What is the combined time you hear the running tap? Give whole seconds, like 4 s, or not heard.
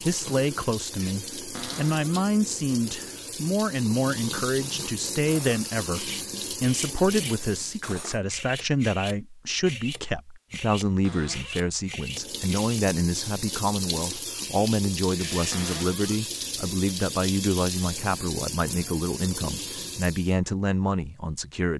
16 s.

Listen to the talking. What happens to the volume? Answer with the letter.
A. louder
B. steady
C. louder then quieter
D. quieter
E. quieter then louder
B.